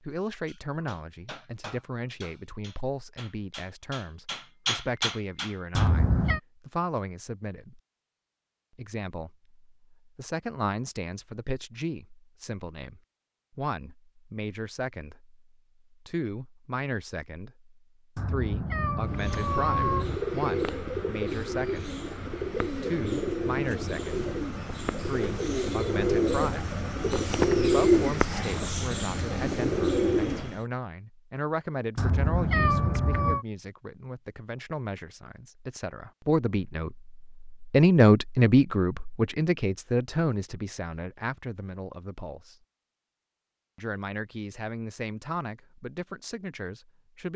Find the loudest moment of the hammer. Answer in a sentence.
The volume of the hammer peaks at 5 seconds.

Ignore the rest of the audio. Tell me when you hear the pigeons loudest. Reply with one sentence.
The volume of the pigeons peaks at 28 seconds.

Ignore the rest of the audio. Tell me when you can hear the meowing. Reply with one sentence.
The meowing can be heard from 5.8 to 6.4 s, from 18.1 to 20.1 s and from 31.9 to 33.5 s.